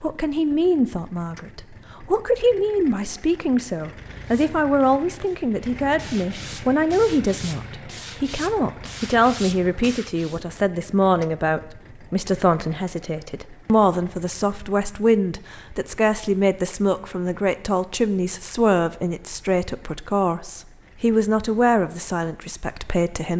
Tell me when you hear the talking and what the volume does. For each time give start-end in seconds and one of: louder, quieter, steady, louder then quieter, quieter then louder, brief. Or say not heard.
0.0-23.3 steady.